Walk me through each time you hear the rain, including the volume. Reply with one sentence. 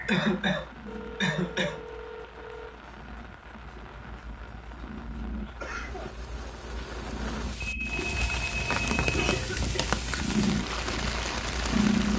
The rain can be heard from 0.0 to 12.1 s, getting louder.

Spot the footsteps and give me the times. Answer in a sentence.
You can't hear the footsteps here.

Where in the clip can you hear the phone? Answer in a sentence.
The phone can be heard from 0.8 to 2.8 s and from 7.6 to 9.3 s.